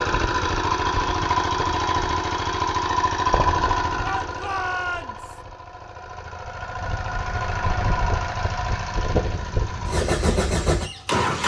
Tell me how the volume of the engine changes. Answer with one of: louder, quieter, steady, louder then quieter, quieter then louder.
quieter then louder.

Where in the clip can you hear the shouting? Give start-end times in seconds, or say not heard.
4.0-5.4.